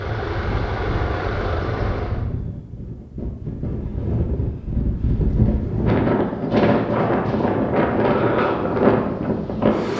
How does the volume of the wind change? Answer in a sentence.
The loudness of the wind goes up.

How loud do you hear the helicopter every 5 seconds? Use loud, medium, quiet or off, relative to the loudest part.
loud, off.